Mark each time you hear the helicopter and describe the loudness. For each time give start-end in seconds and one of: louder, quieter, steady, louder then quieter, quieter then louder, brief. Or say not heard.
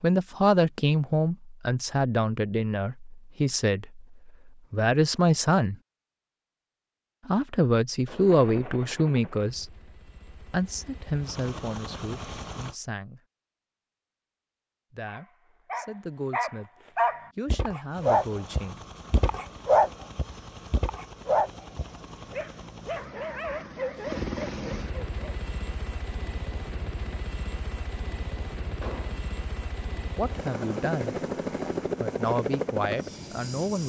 8.2-12.8 quieter then louder
17.9-33.8 louder.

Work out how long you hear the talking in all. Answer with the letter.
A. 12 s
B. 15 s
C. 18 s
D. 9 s
C.